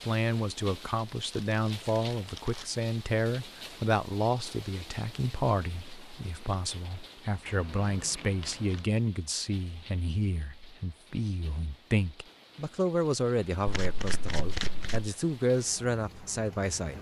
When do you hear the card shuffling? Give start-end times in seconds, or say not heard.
1.1-2.7, 7.5-8.9, 13.7-15.1.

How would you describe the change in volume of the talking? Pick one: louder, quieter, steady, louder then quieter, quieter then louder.
steady.